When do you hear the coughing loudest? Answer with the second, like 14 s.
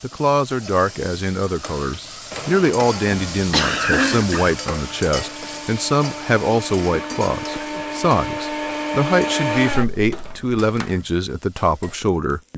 4 s.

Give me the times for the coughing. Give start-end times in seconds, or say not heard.
3.3-4.5, 6.9-7.8.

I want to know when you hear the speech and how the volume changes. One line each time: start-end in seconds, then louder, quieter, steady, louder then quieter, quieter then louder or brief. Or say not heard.
0.0-12.5 steady.